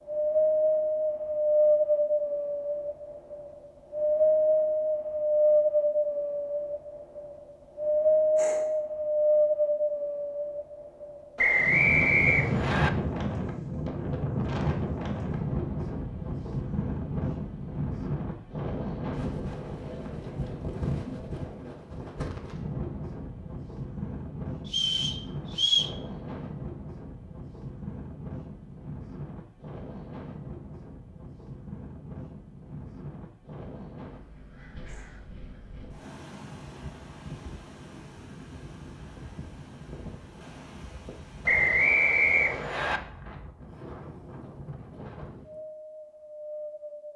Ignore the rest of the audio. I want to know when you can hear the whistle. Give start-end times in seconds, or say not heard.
11.3-12.9, 24.6-25.9, 41.5-43.0.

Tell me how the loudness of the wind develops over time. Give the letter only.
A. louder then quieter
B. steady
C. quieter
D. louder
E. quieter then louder
C.